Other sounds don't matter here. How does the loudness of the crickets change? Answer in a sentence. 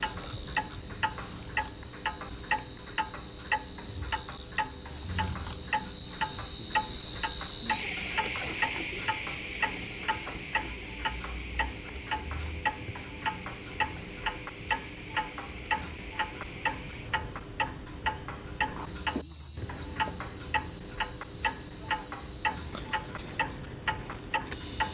The loudness of the crickets goes up, then down.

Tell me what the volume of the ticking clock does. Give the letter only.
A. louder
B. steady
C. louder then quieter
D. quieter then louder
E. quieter
B.